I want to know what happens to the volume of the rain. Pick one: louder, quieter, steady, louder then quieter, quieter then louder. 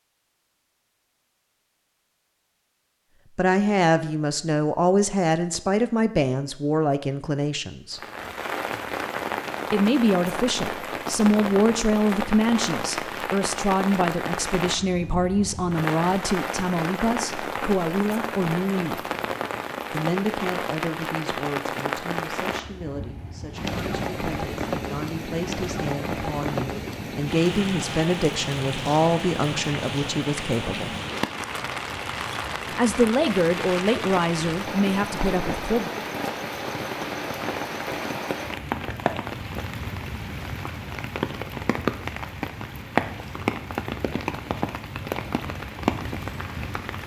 steady.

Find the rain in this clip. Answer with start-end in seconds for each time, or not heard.
7.9-47.0.